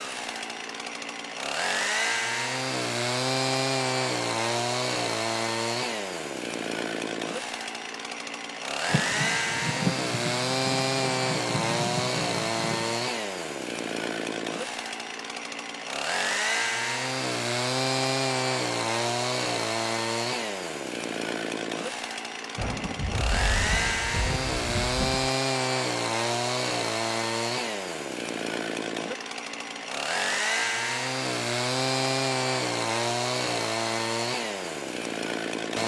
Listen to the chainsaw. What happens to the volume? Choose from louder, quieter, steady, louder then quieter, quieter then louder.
steady.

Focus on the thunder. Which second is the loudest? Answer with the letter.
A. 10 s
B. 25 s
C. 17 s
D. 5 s
A.